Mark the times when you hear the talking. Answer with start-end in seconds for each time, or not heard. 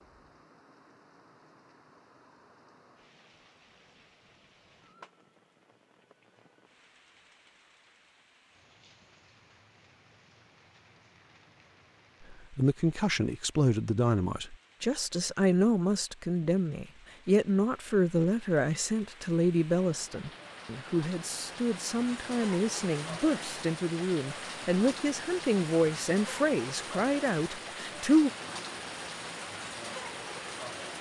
12.3-28.3.